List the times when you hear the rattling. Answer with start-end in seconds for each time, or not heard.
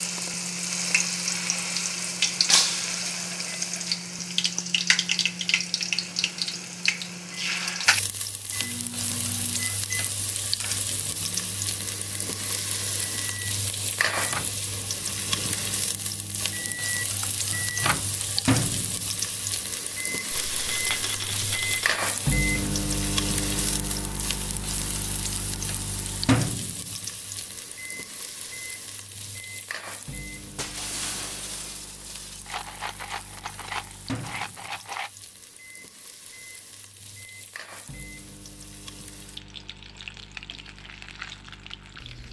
2.9-4.0, 20.3-22.0, 32.5-35.1.